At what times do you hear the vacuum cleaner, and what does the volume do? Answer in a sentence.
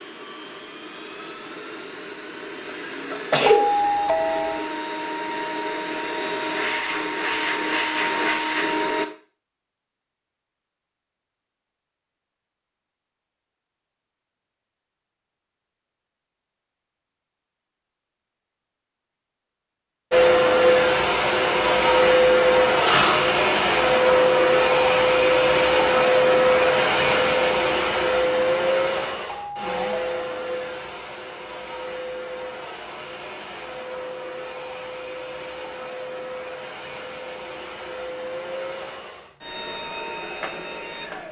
The vacuum cleaner can be heard from 0.0 to 9.1 s, getting louder; and from 20.1 to 41.2 s, getting quieter.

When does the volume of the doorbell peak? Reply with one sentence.
The loudest moment of the doorbell is at 4 seconds.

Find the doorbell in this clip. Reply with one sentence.
The doorbell can be heard from 3.5 to 4.7 s and from 29.2 to 30.3 s.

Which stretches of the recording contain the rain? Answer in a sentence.
The rain can't be heard in this clip.